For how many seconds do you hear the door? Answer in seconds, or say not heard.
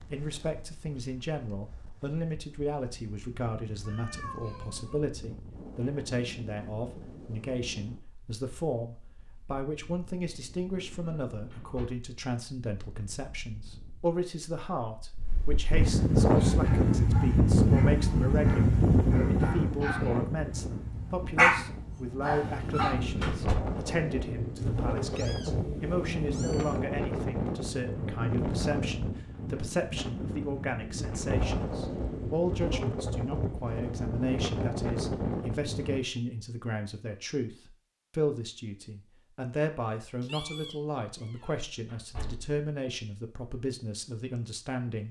3 s.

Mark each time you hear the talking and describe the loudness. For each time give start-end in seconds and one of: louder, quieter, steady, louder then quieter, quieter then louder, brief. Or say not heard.
0.1-45.0 steady.